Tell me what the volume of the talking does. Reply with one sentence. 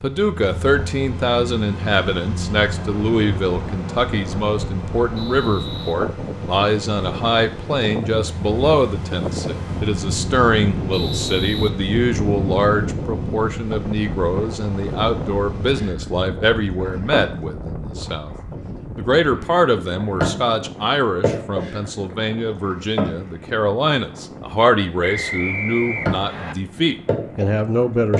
The volume of the talking stays about the same.